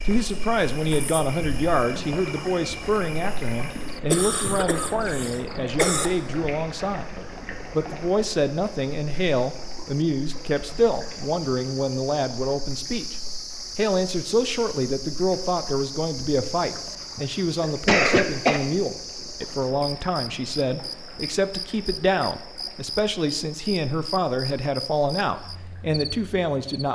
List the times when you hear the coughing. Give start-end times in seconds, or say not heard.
4.1-6.1, 16.8-18.6.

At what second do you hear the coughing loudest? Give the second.
18 s.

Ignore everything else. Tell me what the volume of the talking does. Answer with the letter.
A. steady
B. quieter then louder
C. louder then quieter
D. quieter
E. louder
A.